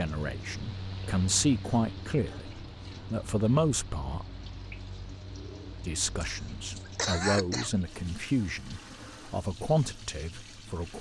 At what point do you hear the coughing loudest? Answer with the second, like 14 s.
7 s.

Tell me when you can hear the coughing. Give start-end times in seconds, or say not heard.
1.6-2.5, 6.2-7.7.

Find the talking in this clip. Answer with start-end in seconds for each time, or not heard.
0.0-4.2, 5.8-10.9.